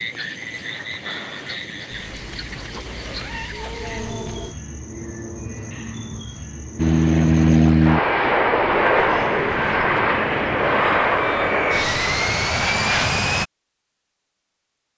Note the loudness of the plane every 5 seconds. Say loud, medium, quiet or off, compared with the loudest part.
off, loud, loud.